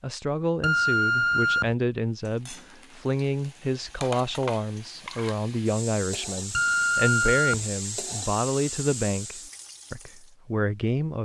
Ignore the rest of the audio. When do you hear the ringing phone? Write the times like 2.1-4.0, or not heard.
0.6-1.8, 6.5-7.7.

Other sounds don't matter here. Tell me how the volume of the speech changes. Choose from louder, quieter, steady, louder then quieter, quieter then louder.
steady.